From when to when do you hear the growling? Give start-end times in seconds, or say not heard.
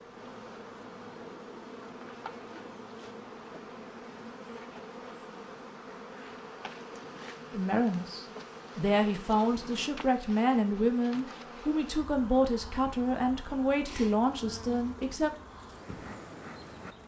not heard.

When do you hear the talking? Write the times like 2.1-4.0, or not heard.
7.5-15.3.